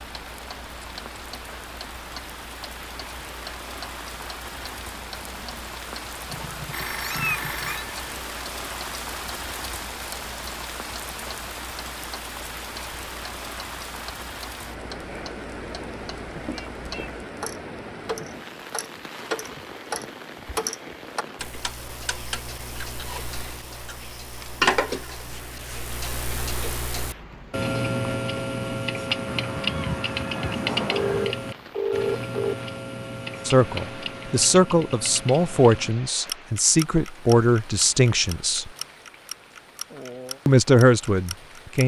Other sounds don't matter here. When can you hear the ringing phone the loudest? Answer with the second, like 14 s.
32 s.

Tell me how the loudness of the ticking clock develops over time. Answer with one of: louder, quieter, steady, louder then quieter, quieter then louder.
louder then quieter.